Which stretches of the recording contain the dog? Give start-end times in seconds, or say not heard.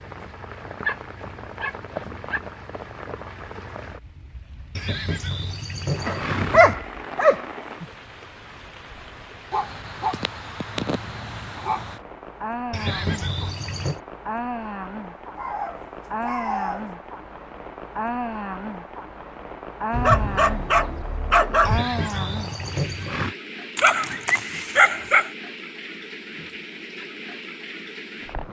0.7-2.4, 6.0-7.8, 9.5-11.9, 15.3-16.9, 19.9-21.8, 23.8-25.3.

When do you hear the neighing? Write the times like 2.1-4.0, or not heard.
4.8-6.8, 12.7-14.0, 21.6-23.4.